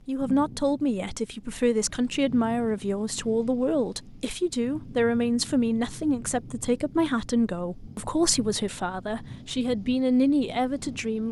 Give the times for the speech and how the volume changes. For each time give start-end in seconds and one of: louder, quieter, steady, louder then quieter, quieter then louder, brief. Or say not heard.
0.1-11.2 steady.